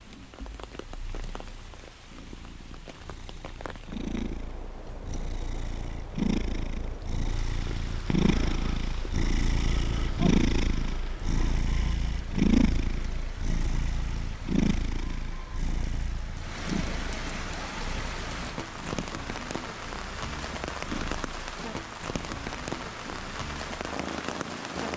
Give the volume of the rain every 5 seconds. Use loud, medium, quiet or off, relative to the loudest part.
quiet, medium, medium, loud, loud.